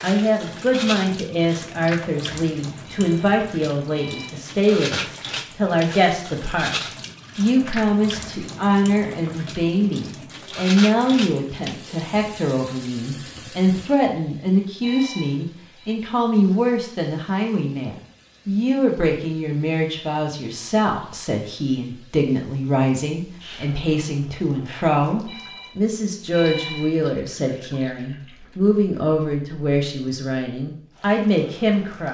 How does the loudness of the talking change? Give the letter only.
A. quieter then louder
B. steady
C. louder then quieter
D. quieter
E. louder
B.